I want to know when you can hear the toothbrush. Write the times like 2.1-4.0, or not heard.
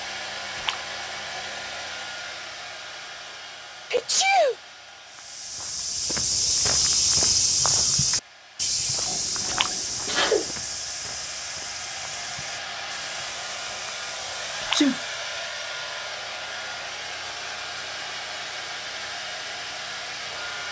not heard.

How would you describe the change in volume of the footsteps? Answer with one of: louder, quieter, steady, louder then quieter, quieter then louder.
quieter.